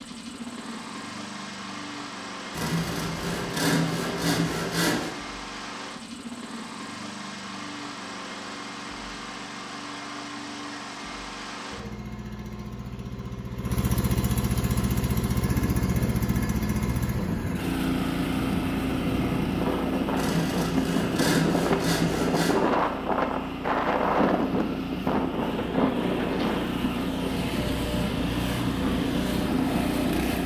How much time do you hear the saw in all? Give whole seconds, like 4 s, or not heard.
5 s.